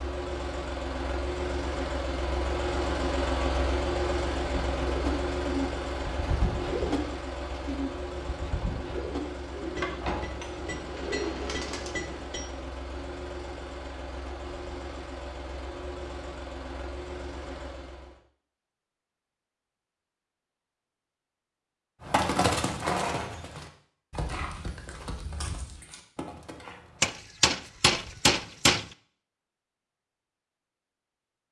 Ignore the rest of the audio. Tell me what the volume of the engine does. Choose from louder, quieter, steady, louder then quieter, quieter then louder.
quieter.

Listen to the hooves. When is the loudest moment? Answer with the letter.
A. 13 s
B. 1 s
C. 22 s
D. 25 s
C.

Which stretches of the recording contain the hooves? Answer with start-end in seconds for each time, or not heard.
22.0-27.1.